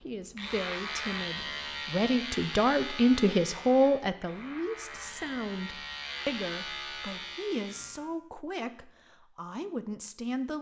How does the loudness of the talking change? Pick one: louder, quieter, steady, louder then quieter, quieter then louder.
louder then quieter.